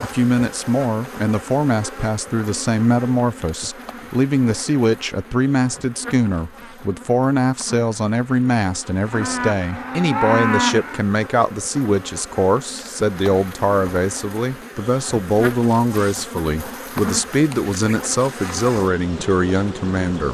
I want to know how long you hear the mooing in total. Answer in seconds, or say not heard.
2 s.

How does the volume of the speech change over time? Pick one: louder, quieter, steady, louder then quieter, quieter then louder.
steady.